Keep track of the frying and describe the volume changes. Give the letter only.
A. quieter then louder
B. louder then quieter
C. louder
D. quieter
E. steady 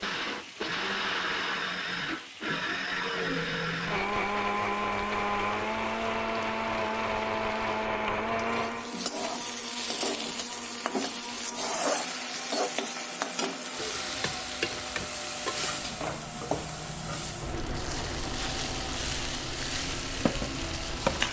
C.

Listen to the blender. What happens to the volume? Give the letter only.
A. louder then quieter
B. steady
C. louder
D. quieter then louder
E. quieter
E.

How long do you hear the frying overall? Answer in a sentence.
The frying can be heard for 21 seconds in total.